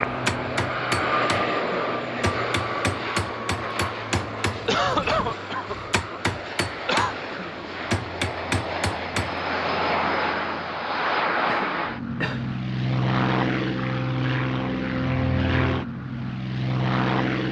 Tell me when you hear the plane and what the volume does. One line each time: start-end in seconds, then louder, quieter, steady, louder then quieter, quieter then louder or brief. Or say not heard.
0.0-17.4 quieter then louder.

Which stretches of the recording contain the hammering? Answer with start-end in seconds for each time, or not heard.
0.1-9.3.